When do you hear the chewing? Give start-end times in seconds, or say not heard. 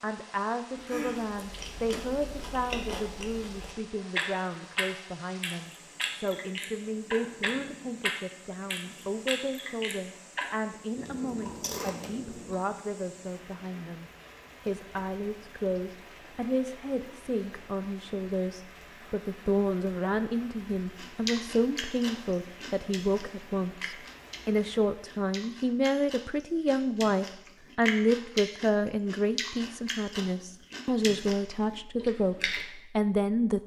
0.8-12.6, 20.9-32.6.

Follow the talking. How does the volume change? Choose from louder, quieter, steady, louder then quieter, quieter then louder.
louder.